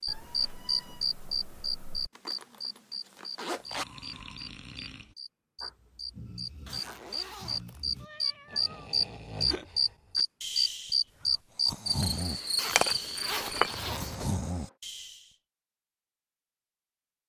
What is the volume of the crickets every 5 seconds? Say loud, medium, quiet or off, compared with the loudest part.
loud, loud, loud, off.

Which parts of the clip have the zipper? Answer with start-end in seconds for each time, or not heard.
2.1-3.9, 6.7-8.1, 12.6-14.2.